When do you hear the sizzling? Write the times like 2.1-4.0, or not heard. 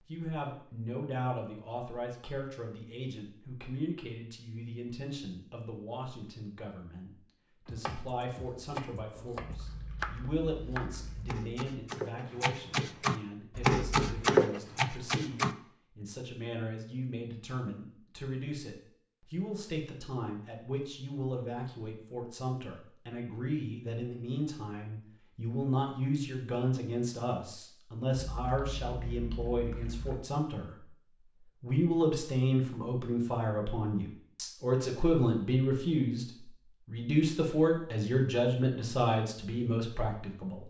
not heard.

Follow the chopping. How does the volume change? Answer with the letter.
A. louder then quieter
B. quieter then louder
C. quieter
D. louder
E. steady
D.